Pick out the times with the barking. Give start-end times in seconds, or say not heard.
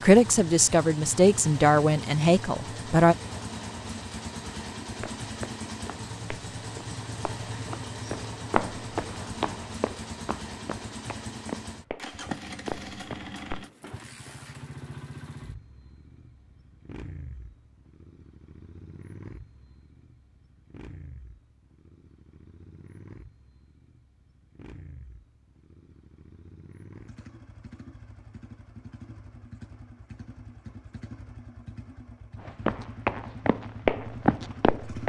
not heard.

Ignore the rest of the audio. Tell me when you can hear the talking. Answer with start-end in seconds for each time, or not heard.
0.0-3.1.